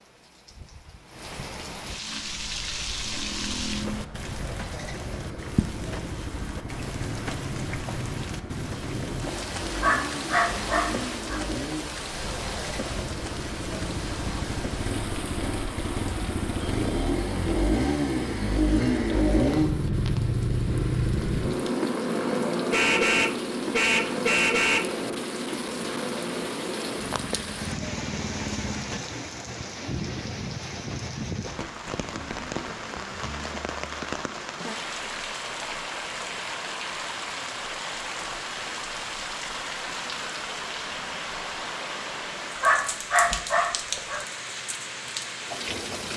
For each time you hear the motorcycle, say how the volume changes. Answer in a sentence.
You can hear the motorcycle from 2.0 to 29.0 s, getting louder then quieter.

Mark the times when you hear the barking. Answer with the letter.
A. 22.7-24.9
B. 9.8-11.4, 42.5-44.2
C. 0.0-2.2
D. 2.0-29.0
B.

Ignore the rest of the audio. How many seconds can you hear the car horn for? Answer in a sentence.
The car horn can be heard for 2 seconds in total.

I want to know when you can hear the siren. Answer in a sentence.
You can't hear the siren here.